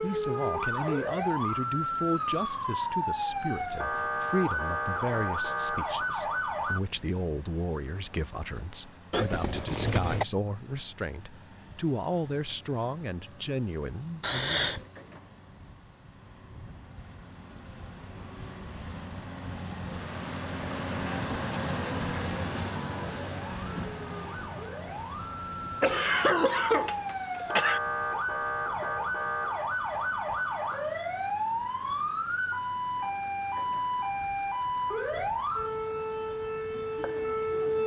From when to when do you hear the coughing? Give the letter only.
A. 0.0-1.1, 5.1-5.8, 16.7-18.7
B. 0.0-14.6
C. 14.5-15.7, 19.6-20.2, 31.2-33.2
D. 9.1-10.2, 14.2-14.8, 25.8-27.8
D.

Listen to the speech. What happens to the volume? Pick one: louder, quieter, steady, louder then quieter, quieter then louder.
steady.